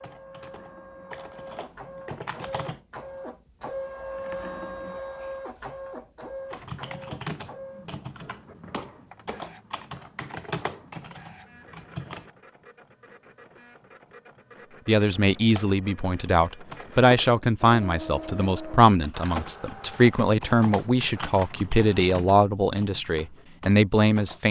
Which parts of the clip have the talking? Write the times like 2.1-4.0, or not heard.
14.8-24.4.